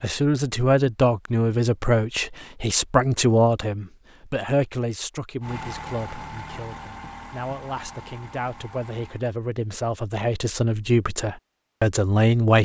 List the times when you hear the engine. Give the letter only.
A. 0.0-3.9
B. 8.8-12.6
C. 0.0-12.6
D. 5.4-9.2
D.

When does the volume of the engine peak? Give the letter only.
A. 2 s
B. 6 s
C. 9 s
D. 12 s
B.